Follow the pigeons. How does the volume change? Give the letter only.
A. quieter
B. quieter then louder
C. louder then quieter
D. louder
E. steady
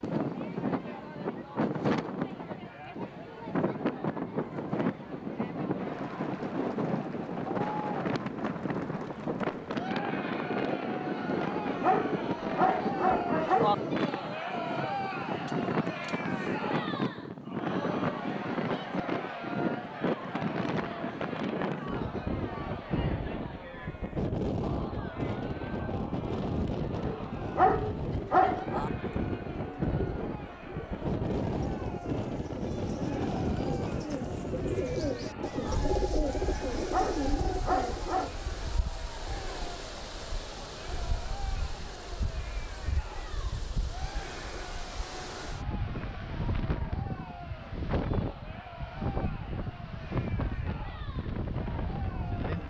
D.